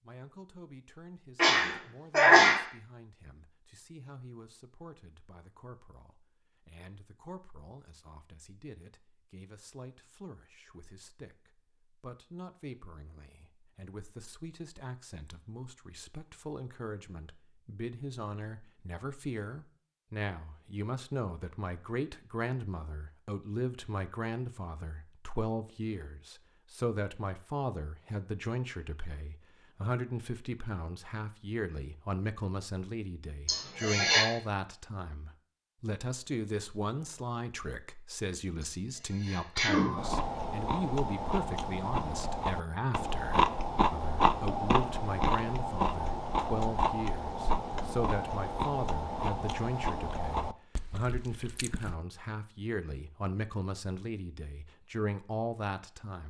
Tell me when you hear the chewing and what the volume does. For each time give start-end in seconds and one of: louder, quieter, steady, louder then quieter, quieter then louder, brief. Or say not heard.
40.0-52.0 louder then quieter.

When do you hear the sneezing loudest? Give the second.
2 s.